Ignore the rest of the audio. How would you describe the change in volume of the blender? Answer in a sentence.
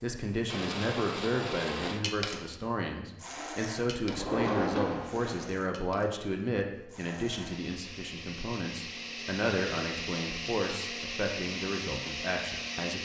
The loudness of the blender goes down, then up.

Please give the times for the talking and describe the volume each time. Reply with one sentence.
The talking can be heard from 0.0 to 12.9 s, at a steady volume.